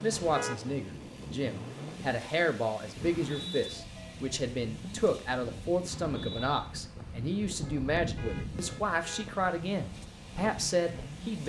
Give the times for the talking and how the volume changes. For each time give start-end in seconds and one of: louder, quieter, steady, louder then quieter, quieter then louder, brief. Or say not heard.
0.0-11.4 steady.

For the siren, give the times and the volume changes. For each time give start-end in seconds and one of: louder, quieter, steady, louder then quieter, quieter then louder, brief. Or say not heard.
not heard.